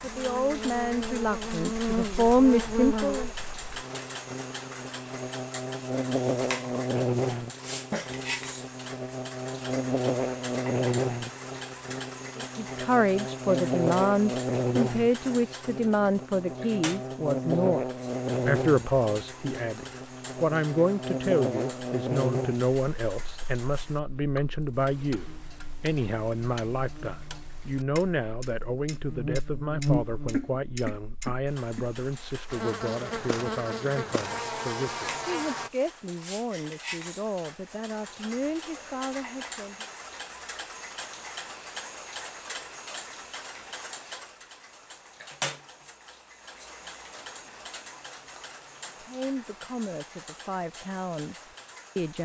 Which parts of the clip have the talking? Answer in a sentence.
You can hear the talking from 0.0 to 3.3 s, from 12.3 to 39.9 s and from 49.0 to 52.1 s.